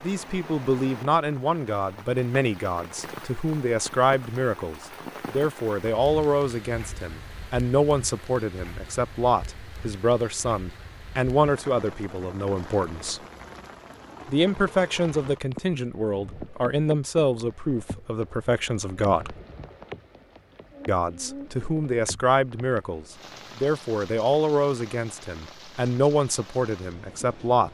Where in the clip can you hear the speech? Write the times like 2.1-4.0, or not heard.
0.0-13.2, 14.2-19.4, 20.9-27.6.